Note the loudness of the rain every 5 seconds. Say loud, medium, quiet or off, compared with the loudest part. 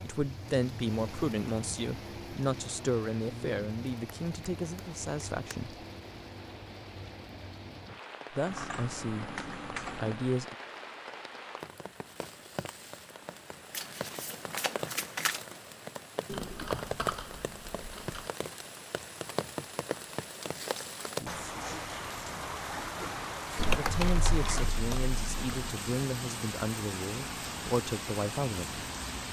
medium, medium, medium, loud, loud, loud.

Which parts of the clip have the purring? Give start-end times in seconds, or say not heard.
not heard.